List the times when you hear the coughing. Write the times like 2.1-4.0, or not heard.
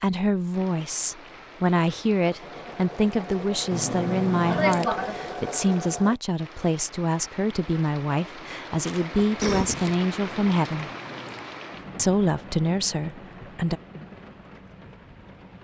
4.5-5.2, 8.8-9.9.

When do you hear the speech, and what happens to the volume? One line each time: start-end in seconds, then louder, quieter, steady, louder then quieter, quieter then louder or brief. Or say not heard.
0.0-10.9 steady
11.9-13.8 brief.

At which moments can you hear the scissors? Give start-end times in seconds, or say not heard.
3.7-4.9, 10.2-11.4.